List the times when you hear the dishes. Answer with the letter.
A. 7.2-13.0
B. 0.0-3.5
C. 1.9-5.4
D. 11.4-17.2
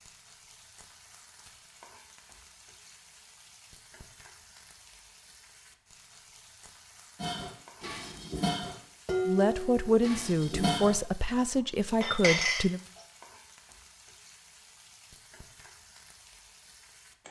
A.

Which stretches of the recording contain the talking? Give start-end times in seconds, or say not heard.
9.2-12.8.